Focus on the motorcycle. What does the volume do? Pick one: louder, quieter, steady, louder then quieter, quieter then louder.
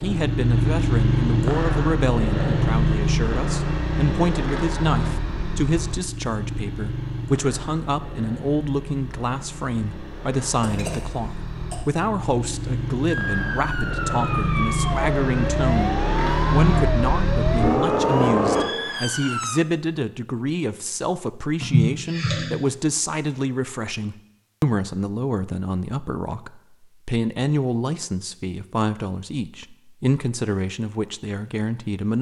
quieter then louder.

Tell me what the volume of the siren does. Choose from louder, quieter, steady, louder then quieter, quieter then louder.
steady.